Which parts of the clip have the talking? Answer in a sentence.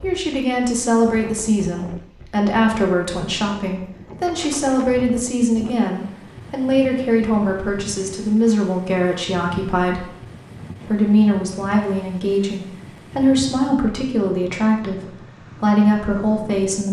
You can hear the talking from 0.0 to 10.1 s and from 10.8 to 16.8 s.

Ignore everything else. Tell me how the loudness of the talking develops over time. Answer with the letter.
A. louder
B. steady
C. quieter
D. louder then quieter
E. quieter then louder
B.